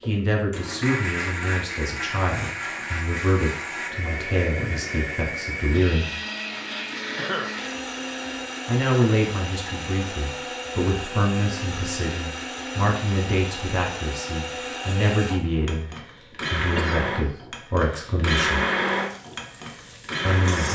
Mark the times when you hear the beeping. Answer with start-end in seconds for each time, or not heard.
not heard.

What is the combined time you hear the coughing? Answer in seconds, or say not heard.
2 s.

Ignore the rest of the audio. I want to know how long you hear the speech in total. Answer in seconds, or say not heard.
16 s.